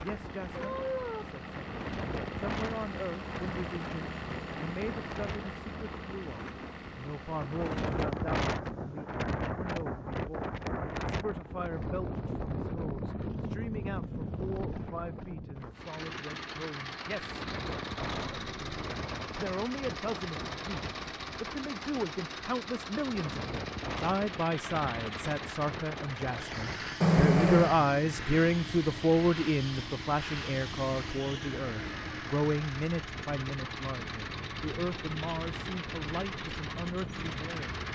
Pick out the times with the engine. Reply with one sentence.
You can hear the engine from 0.0 to 7.8 s and from 15.7 to 37.9 s.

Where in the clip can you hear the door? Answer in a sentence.
You can't hear the door here.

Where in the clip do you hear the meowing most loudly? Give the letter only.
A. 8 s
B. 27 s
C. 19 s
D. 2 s
B.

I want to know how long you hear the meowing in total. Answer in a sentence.
You can hear the meowing for 2 seconds altogether.